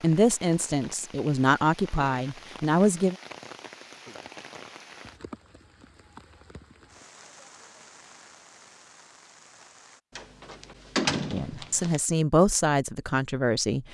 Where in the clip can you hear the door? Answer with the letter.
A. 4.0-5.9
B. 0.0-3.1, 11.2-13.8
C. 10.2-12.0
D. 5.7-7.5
C.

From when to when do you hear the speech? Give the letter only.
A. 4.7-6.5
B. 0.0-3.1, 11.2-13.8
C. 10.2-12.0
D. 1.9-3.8
B.